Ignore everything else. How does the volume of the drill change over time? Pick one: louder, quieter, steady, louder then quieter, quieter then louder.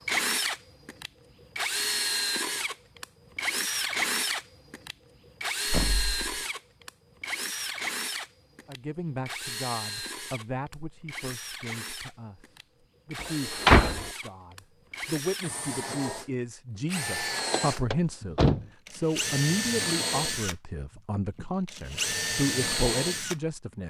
quieter then louder.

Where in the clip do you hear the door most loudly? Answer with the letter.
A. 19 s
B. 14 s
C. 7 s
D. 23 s
B.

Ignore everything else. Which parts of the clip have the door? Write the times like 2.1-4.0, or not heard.
5.7-6.2, 13.2-14.1, 17.5-18.6.